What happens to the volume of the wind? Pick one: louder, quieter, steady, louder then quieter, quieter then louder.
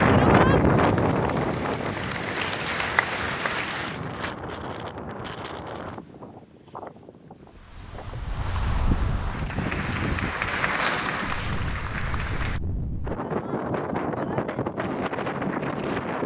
quieter then louder.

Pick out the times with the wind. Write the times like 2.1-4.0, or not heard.
0.0-16.2.